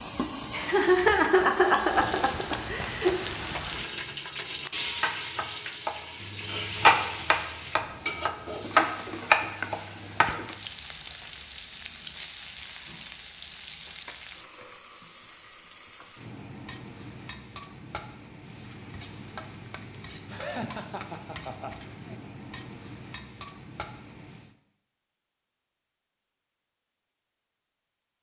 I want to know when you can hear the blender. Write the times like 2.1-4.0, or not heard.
not heard.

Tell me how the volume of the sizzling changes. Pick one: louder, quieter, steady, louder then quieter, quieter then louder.
quieter.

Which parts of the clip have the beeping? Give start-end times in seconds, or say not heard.
not heard.